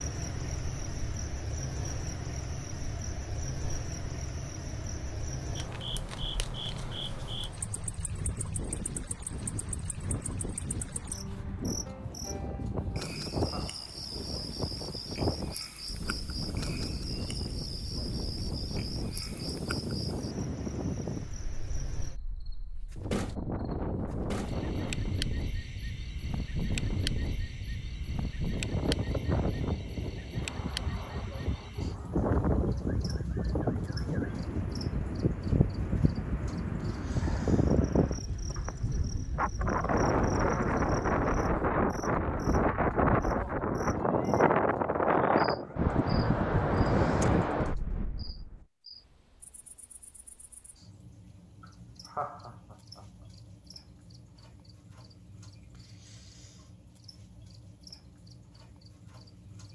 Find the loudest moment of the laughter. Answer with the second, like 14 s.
52 s.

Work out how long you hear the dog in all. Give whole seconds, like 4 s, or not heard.
not heard.